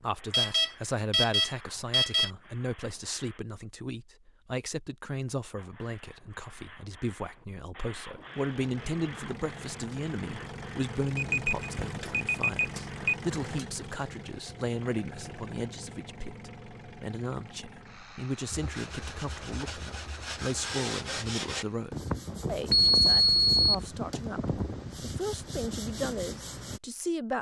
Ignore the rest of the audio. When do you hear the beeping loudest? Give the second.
23 s.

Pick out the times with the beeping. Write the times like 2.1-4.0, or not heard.
0.3-2.3, 11.2-13.2, 22.7-23.9.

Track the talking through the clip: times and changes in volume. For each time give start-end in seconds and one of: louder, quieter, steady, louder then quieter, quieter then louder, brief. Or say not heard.
0.0-27.3 steady.